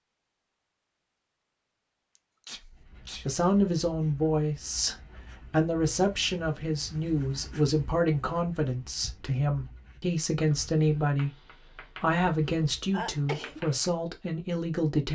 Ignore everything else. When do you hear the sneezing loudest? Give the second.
13 s.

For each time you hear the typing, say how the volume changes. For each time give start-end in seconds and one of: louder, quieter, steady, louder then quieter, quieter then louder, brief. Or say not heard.
not heard.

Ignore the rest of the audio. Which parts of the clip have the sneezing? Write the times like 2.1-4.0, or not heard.
2.1-3.2, 12.9-13.6.